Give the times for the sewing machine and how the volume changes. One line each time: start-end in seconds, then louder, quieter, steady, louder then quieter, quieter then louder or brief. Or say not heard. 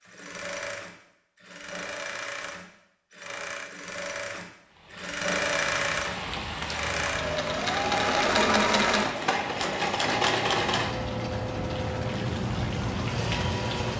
0.0-13.9 louder then quieter.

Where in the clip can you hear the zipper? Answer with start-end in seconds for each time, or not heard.
not heard.